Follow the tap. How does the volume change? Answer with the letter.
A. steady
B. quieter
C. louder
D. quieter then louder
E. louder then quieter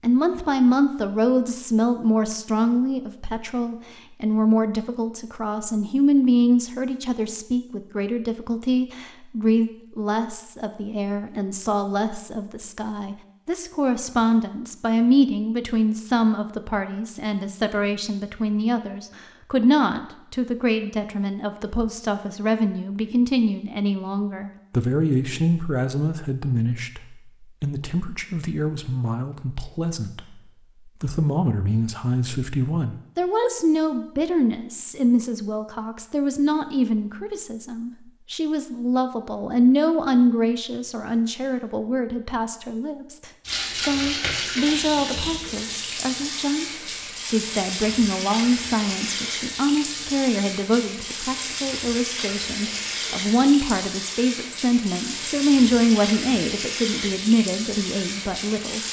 A.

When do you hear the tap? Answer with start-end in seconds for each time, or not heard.
43.5-58.8.